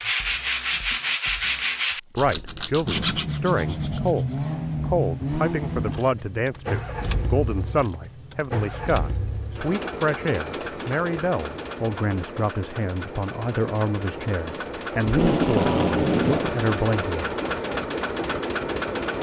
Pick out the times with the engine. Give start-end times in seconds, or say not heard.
2.9-19.1.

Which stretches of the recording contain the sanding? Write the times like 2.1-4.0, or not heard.
0.0-4.5.